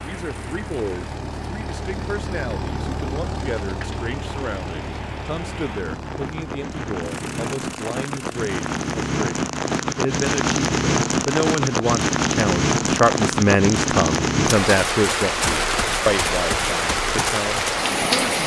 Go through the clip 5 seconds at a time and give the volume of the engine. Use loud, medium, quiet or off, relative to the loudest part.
loud, medium, off, off.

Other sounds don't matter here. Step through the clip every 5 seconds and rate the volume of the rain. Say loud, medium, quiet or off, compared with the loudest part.
quiet, medium, loud, loud.